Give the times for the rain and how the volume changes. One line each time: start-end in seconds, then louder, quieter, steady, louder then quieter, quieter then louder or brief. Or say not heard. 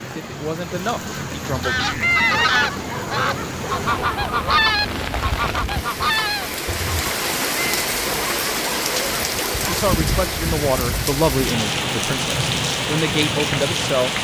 0.0-14.1 louder.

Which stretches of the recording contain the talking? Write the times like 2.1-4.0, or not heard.
0.0-2.4, 9.6-14.1.